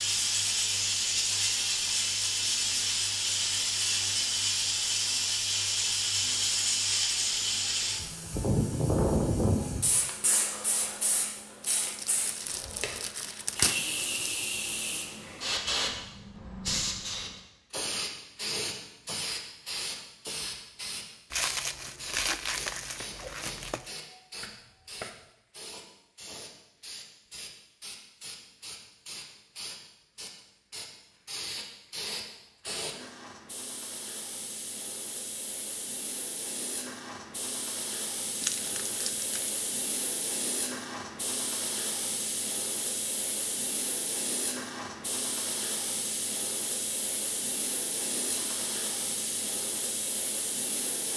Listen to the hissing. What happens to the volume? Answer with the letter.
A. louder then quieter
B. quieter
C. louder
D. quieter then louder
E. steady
D.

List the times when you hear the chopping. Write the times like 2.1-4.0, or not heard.
24.4-25.3.